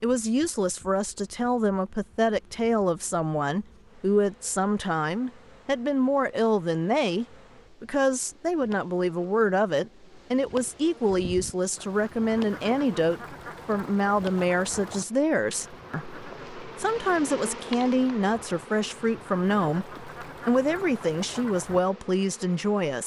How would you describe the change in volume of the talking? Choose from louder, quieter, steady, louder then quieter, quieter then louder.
steady.